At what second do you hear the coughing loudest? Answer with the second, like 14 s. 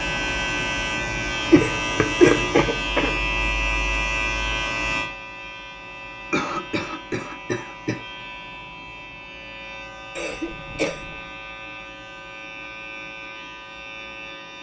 2 s.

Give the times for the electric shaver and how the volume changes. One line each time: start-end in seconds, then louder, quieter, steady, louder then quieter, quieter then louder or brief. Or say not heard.
0.0-14.5 quieter.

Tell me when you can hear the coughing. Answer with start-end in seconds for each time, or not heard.
1.5-3.2, 6.3-8.0, 10.2-11.2.